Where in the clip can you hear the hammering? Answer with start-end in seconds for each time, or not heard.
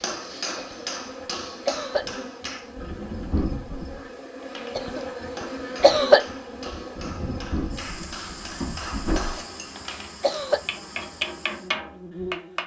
0.0-2.7, 4.4-12.6.